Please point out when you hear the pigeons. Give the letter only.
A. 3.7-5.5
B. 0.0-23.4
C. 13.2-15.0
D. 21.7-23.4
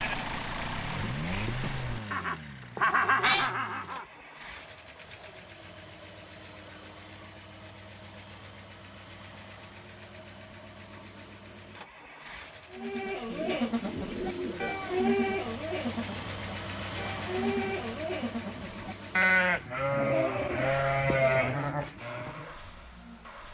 C.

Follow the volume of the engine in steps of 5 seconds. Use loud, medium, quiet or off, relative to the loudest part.
loud, medium, medium, loud, medium.